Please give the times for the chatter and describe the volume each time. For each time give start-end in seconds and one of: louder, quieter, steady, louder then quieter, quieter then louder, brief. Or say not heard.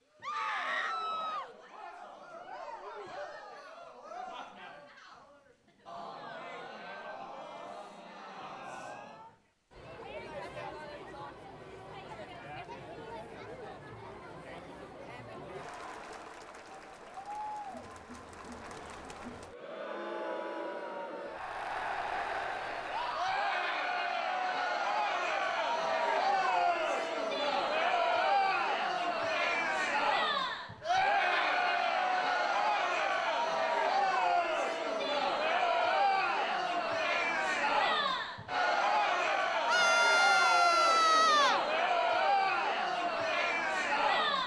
0.1-44.4 louder.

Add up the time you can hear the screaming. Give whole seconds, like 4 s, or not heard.
4 s.